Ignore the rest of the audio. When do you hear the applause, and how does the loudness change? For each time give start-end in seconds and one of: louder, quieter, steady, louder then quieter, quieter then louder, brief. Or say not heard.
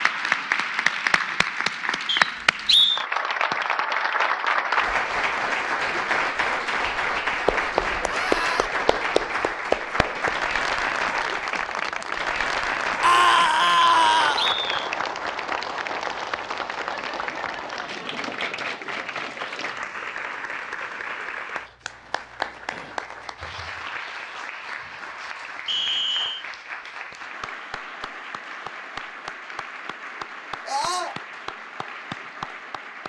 0.0-33.0 quieter.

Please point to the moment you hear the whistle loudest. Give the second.
3 s.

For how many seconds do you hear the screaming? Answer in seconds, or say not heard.
3 s.